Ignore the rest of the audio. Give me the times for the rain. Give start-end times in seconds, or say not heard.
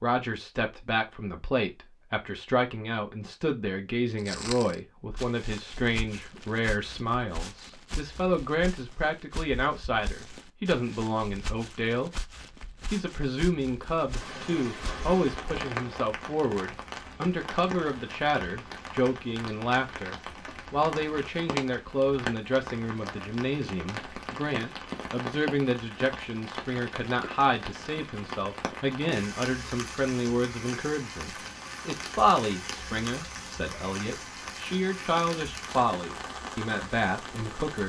14.0-37.8.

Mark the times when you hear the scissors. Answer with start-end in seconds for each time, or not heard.
not heard.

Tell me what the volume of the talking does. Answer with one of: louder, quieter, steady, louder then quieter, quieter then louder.
steady.